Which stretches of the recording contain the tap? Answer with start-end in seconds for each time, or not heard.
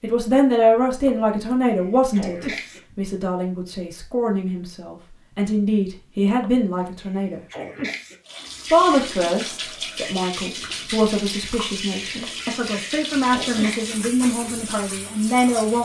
8.2-15.8.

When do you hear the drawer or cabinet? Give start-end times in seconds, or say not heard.
not heard.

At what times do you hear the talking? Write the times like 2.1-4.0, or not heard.
0.0-7.4, 8.7-15.8.